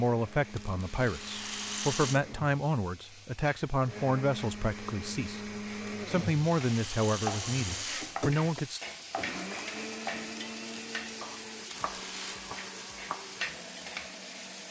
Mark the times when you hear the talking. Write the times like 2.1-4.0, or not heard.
0.0-8.8.